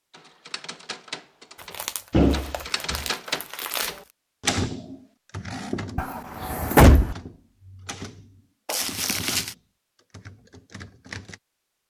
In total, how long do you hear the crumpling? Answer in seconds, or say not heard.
3 s.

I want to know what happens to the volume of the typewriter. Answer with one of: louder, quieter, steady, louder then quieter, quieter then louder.
louder then quieter.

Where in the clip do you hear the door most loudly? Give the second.
7 s.